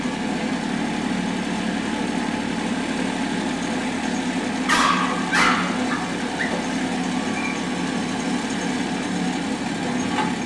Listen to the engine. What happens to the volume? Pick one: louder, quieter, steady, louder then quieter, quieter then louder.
steady.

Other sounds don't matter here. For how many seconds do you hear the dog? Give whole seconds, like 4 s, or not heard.
2 s.